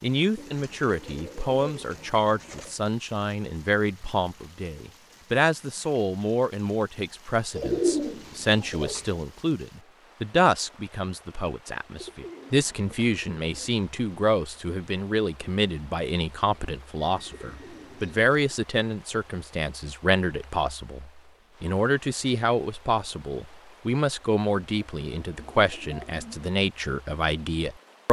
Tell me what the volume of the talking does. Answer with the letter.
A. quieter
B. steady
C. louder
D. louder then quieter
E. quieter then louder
B.